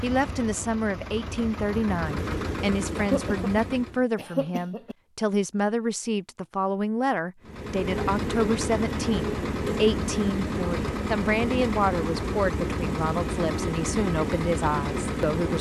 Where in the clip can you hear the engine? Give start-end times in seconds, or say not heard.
0.0-4.0, 7.4-15.5.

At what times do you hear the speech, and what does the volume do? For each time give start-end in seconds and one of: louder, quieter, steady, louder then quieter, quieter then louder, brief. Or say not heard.
0.0-15.5 steady.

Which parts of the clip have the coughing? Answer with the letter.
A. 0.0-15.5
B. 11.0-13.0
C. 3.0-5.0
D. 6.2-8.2
C.